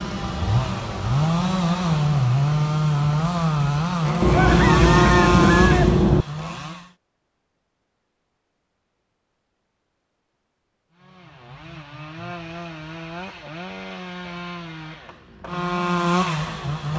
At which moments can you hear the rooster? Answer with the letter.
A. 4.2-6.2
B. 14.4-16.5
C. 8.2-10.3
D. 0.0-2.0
A.